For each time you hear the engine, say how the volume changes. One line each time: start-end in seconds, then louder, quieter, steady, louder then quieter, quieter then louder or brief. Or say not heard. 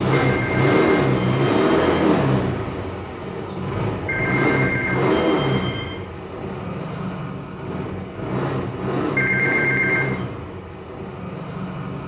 0.0-12.0 quieter.